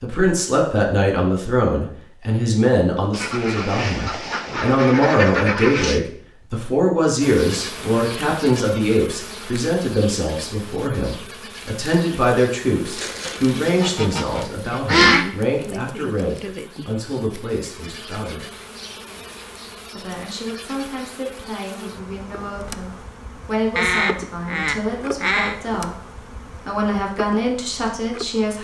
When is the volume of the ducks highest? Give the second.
15 s.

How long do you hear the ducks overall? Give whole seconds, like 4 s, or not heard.
7 s.